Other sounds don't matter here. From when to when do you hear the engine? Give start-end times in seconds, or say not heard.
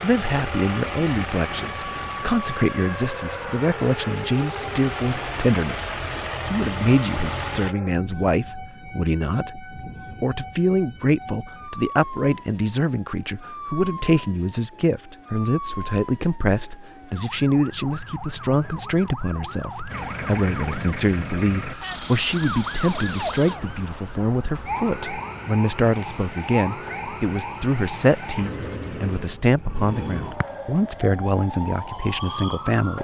0.0-7.8, 19.9-23.6.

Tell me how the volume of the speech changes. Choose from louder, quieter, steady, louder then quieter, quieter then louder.
steady.